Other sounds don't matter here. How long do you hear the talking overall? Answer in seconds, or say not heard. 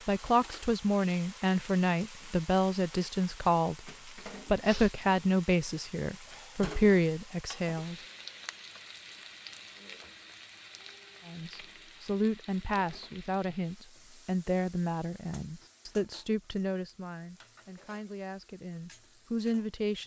17 s.